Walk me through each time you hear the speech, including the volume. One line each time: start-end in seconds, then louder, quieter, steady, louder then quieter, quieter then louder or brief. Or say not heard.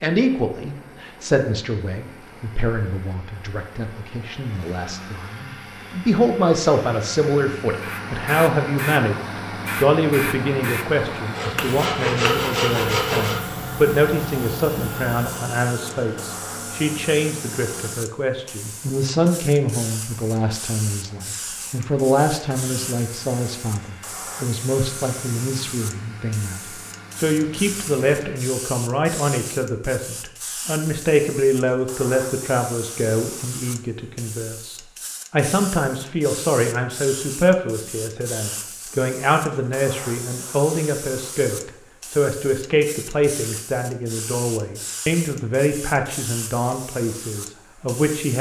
0.0-48.3 steady.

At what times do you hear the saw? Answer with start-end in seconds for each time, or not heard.
11.3-13.4.